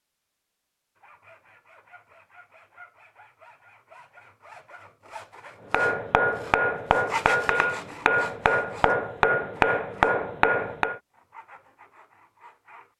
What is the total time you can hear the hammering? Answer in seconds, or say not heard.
5 s.